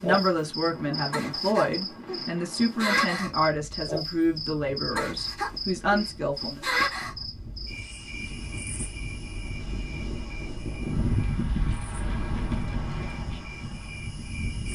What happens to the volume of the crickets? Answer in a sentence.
The volume of the crickets goes down.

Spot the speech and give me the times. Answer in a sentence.
You can hear the speech from 0.0 to 6.6 s.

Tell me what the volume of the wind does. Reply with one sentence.
The volume of the wind goes down, then up.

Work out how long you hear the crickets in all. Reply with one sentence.
The crickets can be heard for 15 seconds in total.